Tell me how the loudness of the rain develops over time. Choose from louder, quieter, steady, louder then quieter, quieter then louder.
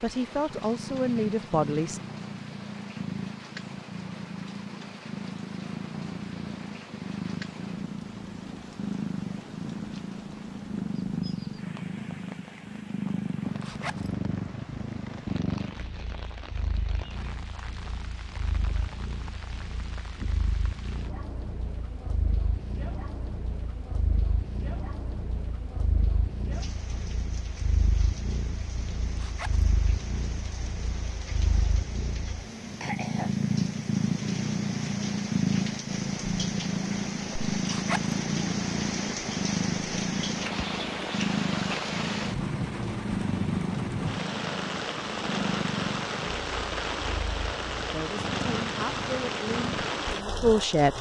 louder.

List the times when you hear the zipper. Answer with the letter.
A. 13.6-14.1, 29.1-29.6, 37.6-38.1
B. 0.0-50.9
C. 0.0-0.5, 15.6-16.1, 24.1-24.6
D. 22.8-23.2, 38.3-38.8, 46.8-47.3
A.